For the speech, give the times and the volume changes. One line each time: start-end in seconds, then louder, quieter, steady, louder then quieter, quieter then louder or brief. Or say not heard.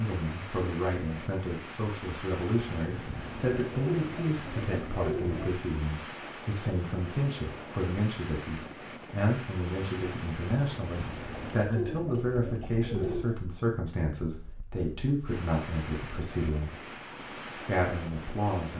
0.0-16.9 steady
17.5-18.7 brief.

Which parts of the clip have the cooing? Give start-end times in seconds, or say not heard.
2.6-5.5, 10.5-13.4.